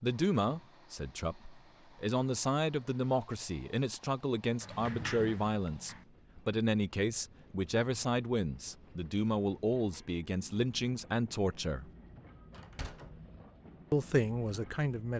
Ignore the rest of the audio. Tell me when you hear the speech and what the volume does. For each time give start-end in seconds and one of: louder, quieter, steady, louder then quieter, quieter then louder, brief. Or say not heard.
0.0-11.9 steady
13.9-15.1 brief.